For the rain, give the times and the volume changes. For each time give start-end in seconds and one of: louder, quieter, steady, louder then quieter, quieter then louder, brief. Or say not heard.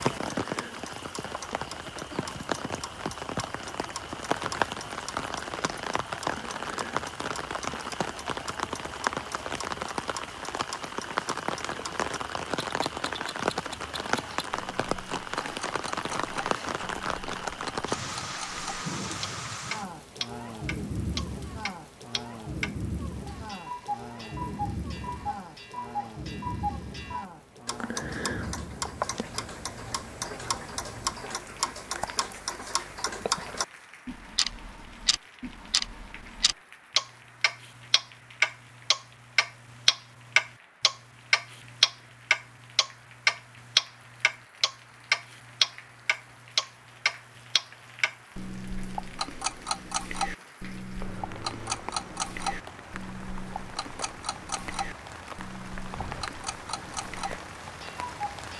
0.0-58.5 quieter then louder.